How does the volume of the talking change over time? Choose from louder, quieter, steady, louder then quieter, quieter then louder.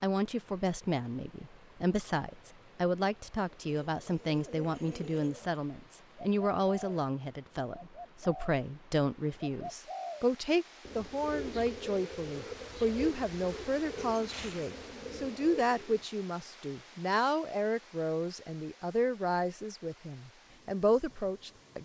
steady.